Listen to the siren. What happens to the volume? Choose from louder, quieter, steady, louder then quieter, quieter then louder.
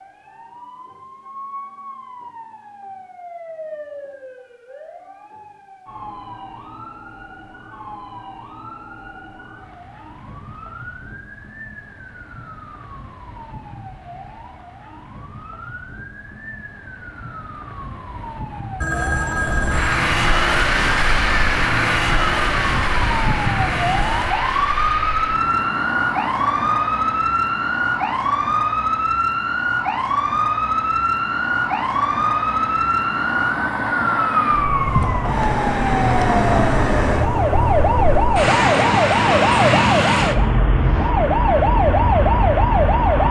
louder.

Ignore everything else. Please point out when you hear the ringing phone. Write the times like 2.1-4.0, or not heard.
18.8-20.1.